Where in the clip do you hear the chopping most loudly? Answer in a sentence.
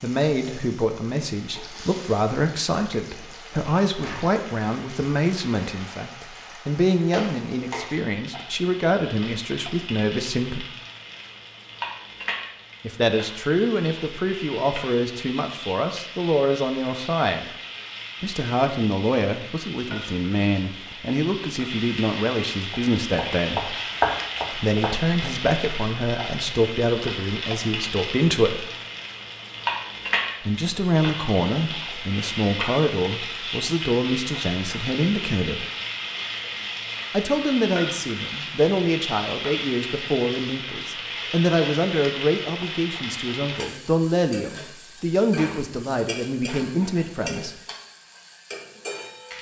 The loudest moment of the chopping is at 24 seconds.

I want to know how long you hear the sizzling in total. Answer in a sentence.
The sizzling can be heard for 49 seconds in total.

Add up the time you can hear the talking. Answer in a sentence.
The talking can be heard for 41 seconds in total.